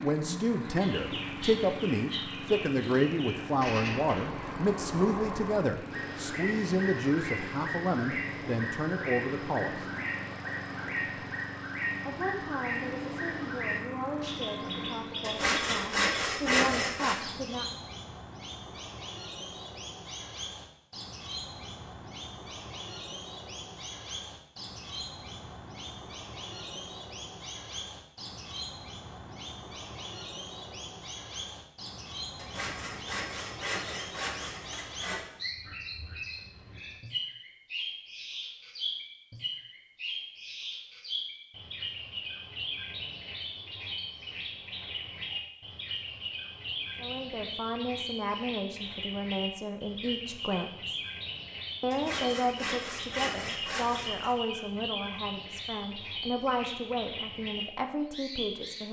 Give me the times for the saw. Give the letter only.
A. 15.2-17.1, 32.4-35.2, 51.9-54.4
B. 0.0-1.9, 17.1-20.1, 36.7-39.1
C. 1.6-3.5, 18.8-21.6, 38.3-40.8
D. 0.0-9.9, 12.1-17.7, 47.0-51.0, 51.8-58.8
A.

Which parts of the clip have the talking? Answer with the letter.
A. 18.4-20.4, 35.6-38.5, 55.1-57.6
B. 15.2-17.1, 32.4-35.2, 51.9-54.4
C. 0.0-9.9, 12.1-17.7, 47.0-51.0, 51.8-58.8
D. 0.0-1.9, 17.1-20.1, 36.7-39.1
C.